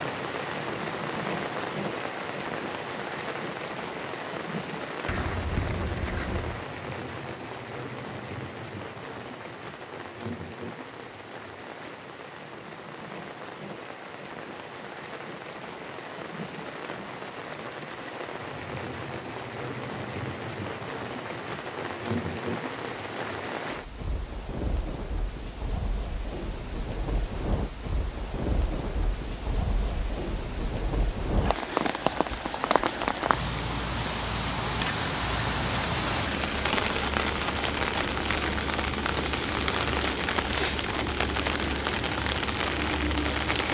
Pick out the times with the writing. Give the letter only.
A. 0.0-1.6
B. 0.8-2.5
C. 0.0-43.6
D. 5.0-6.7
D.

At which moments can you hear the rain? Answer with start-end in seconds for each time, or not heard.
0.0-43.6.